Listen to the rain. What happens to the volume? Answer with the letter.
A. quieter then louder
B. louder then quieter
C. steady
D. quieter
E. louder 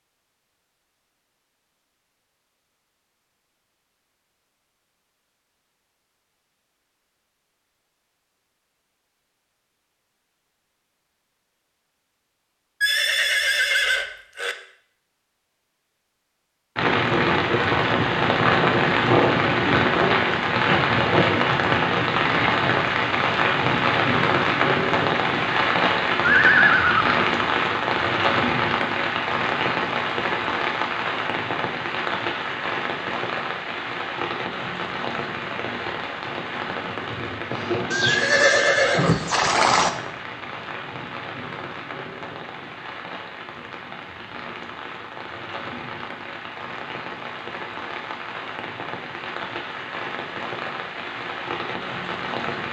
D.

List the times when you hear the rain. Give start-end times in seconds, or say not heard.
16.8-52.6.